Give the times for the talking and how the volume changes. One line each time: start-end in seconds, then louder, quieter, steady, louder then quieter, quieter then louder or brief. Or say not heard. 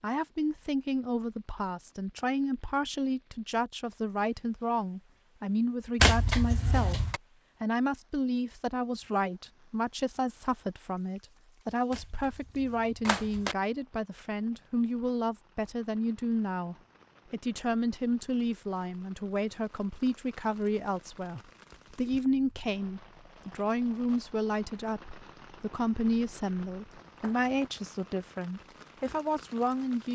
0.0-30.1 steady.